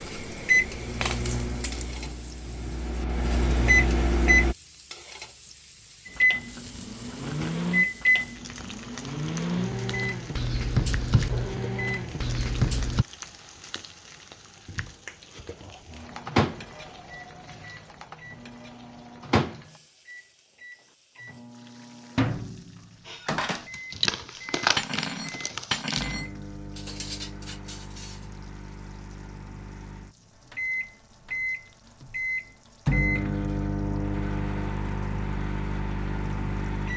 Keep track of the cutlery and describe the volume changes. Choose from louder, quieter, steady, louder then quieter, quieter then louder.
quieter.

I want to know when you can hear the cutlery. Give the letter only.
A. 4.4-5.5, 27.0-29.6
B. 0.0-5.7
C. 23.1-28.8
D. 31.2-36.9
C.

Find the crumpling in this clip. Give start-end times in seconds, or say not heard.
0.9-2.0, 23.6-26.1.